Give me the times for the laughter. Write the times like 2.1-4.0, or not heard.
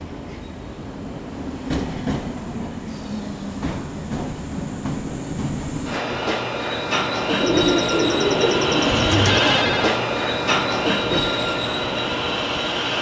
not heard.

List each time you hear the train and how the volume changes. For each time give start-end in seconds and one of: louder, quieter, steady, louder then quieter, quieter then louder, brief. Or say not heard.
0.0-12.9 louder.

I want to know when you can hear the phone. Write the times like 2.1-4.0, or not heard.
9.1-9.9.